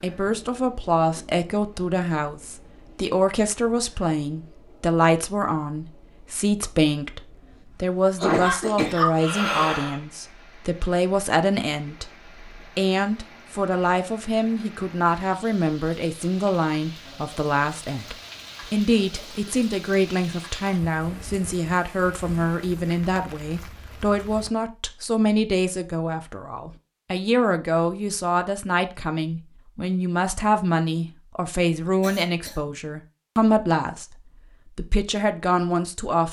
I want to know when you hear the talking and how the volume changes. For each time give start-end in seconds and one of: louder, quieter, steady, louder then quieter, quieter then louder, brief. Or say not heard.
0.0-36.2 steady.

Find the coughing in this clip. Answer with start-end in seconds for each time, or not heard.
8.2-10.0, 32.0-32.7.